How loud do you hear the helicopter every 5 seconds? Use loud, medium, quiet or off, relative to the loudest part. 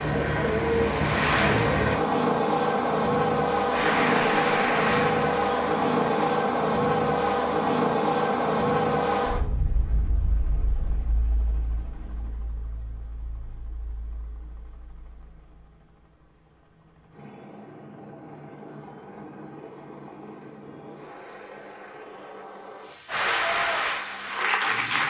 loud, loud, quiet, quiet, quiet.